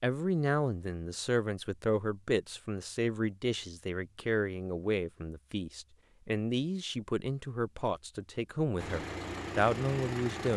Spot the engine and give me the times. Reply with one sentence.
The engine can be heard from 8.8 to 10.5 s.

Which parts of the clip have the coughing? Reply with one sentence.
The coughing can't be heard in this clip.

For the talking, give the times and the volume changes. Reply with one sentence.
You can hear the talking from 0.0 to 10.5 s, at a steady volume.